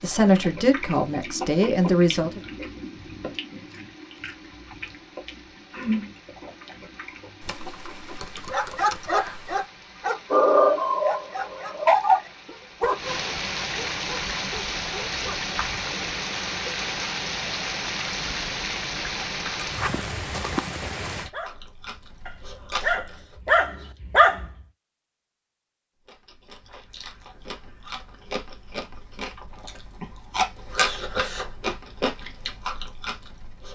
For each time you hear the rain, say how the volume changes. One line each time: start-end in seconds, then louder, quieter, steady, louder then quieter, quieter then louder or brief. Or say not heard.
0.0-21.3 louder.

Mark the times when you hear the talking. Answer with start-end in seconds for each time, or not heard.
0.0-2.4.